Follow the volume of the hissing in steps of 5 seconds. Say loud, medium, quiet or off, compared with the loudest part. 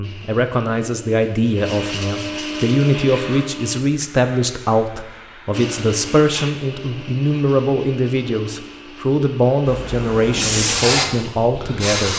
quiet, quiet, loud.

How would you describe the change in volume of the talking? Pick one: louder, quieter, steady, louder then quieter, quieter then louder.
steady.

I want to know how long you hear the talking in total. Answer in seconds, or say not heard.
12 s.